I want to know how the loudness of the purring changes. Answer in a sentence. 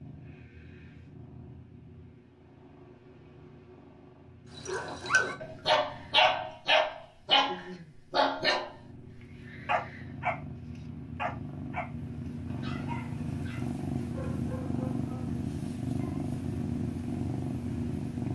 The volume of the purring goes up.